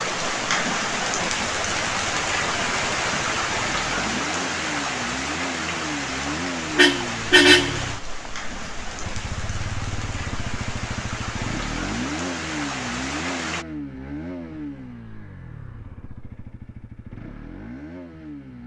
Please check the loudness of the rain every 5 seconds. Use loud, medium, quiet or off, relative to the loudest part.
loud, medium, medium, off.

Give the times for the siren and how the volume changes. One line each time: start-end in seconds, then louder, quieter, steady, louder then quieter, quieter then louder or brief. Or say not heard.
not heard.